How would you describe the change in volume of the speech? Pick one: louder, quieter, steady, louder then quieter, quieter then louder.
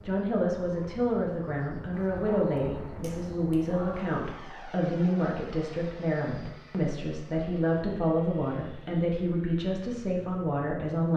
steady.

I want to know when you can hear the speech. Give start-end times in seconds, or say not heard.
0.0-11.1.